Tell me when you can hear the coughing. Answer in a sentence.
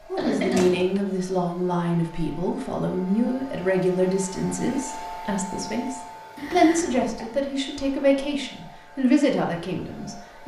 You can hear the coughing from 0.1 to 0.7 s and from 6.3 to 7.1 s.